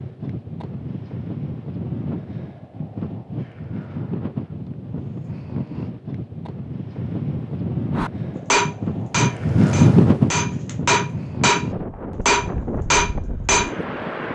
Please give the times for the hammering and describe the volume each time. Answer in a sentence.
You can hear the hammering from 8.0 to 13.7 s, getting quieter then louder.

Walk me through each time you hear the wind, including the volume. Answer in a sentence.
The wind can be heard from 0.0 to 14.2 s, getting louder then quieter.